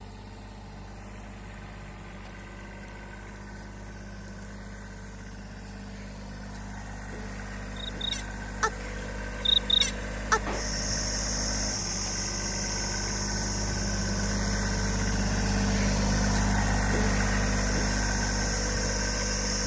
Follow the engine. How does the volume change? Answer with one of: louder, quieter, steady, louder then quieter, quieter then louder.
louder.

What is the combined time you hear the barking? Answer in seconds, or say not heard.
not heard.